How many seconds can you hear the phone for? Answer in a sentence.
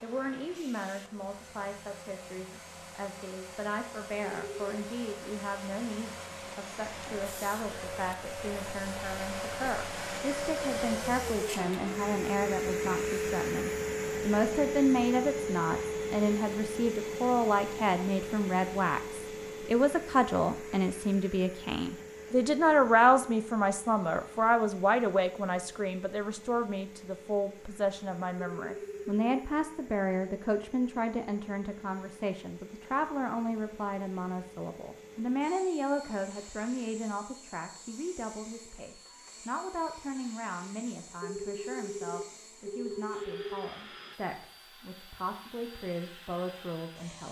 You can hear the phone for 4 seconds altogether.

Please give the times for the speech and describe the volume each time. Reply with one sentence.
The speech can be heard from 0.0 to 47.2 s, getting louder then quieter.